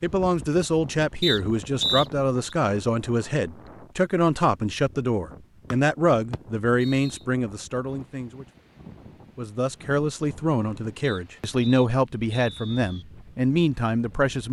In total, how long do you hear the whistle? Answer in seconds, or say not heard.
5 s.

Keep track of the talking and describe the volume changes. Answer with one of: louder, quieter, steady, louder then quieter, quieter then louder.
steady.